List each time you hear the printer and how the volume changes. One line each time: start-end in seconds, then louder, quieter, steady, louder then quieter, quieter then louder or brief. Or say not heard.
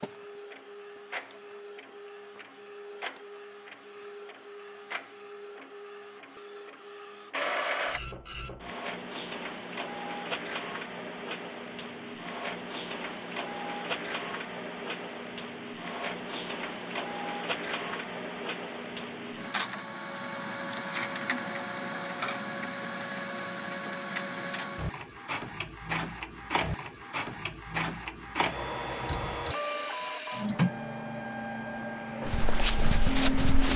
0.0-33.7 louder.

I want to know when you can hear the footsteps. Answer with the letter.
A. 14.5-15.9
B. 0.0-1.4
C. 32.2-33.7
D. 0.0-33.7
C.